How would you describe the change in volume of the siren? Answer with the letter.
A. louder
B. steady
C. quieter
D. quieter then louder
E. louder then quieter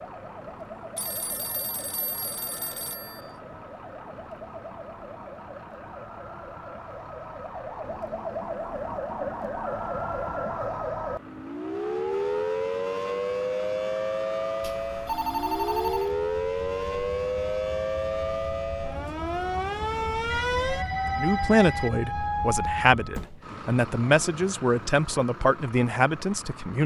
A.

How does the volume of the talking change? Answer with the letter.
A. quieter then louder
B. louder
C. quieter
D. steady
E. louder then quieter
D.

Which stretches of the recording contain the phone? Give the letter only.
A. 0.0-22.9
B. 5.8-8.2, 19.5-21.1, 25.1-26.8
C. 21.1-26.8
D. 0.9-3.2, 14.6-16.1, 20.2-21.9
D.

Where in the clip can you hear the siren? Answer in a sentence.
The siren can be heard from 0.0 to 22.9 s.